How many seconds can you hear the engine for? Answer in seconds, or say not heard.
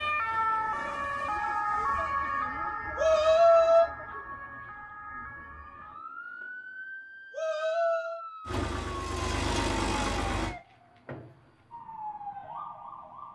2 s.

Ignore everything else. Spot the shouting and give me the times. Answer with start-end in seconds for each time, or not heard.
3.0-3.9, 7.3-8.2.